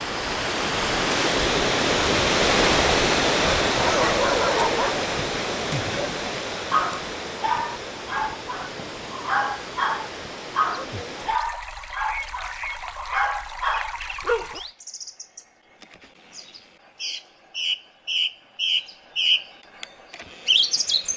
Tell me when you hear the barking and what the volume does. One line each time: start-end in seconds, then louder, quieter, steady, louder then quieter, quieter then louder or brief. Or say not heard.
3.8-14.6 steady.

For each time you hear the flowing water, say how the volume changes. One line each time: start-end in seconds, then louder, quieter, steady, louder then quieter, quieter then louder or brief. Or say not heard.
0.0-14.8 quieter.